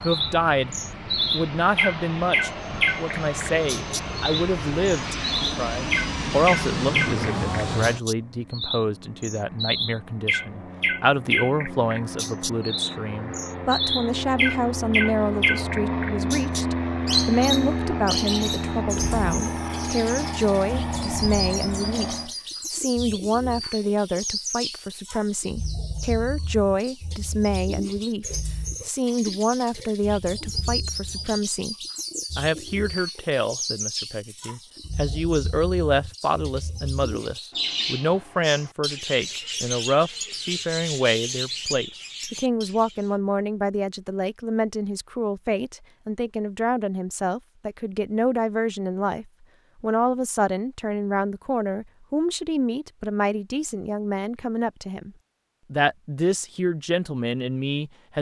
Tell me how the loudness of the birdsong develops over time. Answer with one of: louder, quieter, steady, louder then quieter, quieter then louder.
quieter.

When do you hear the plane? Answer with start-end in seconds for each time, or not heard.
0.0-22.3.